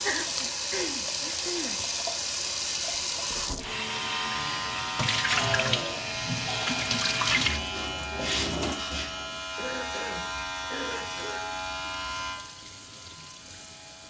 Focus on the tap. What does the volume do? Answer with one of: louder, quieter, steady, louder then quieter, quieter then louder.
quieter.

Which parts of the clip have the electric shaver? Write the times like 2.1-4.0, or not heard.
3.6-14.0.